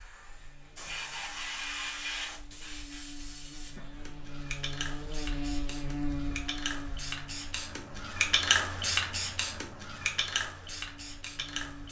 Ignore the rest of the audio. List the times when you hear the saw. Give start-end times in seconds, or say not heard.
not heard.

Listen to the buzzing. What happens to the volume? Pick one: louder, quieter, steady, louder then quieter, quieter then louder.
louder then quieter.